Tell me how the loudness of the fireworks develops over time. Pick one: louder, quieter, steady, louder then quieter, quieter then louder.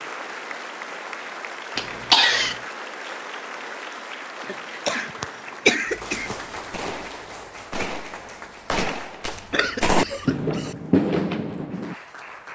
louder.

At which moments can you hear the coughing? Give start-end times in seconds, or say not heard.
1.8-2.6, 4.5-6.3, 9.2-10.8.